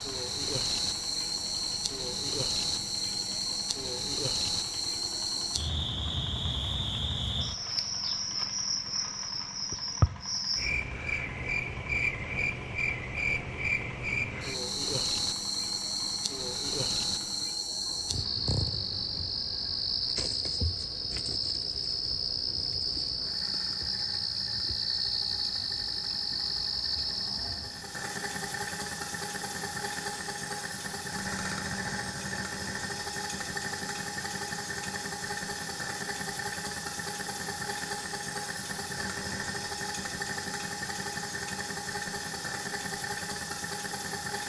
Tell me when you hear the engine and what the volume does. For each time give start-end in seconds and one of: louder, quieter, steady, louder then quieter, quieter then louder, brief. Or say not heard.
0.0-44.4 louder.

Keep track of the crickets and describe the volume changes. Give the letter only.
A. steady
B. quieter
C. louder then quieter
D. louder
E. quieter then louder
A.